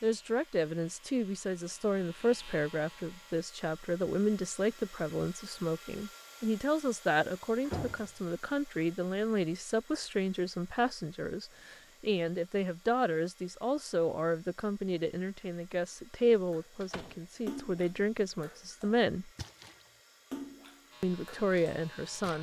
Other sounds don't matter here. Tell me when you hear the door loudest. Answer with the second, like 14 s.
8 s.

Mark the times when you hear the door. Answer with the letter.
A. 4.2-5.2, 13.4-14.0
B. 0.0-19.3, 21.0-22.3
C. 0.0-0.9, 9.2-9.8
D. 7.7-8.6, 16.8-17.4
D.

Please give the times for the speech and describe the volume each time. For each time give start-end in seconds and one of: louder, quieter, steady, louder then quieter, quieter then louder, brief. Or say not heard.
0.0-19.3 steady
21.0-22.3 brief.